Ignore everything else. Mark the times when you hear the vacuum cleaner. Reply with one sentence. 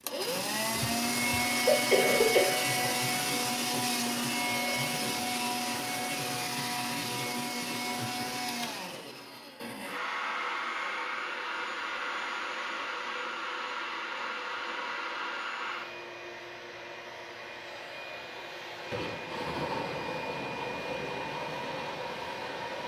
The vacuum cleaner can be heard from 0.0 to 22.8 s.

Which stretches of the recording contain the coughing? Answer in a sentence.
You can hear the coughing from 0.8 to 2.5 s.